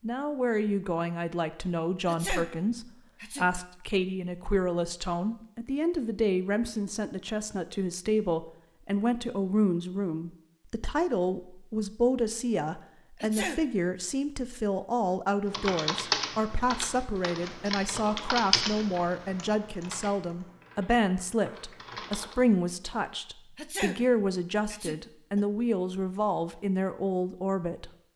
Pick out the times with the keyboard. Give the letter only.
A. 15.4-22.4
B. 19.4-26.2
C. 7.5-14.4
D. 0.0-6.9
A.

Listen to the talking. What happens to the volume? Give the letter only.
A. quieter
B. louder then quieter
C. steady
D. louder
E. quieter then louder
C.